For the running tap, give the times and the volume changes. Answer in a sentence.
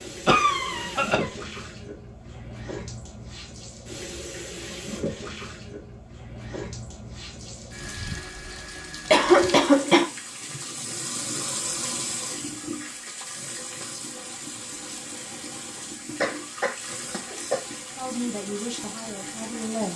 You can hear the running tap from 0.0 to 19.9 s, at a steady volume.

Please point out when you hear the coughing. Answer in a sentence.
The coughing can be heard from 0.2 to 1.3 s, from 9.1 to 10.1 s and from 16.2 to 17.6 s.